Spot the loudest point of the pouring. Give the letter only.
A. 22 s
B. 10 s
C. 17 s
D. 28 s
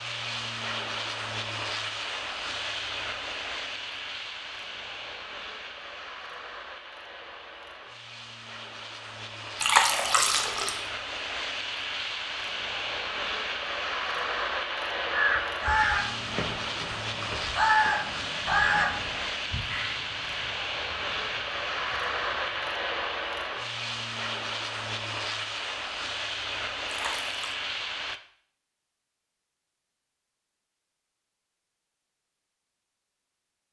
B.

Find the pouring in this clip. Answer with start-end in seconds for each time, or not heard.
9.6-10.8, 26.9-27.6.